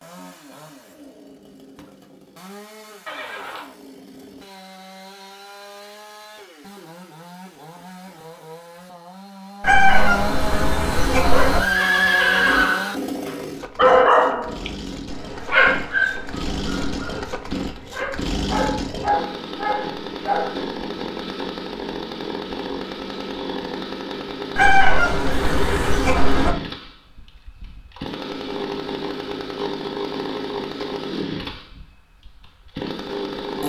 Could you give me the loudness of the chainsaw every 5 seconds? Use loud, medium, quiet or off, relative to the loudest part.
quiet, medium, loud, loud, loud, loud, loud.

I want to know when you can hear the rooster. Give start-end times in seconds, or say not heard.
9.6-11.6, 24.6-26.6.